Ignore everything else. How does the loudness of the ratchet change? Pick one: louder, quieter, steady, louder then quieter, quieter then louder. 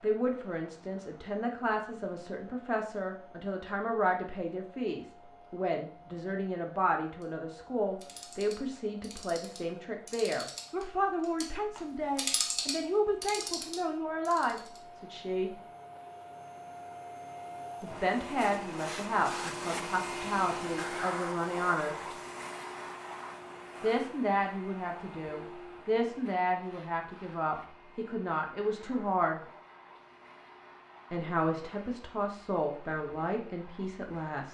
louder then quieter.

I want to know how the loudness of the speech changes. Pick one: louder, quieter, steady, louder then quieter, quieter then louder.
steady.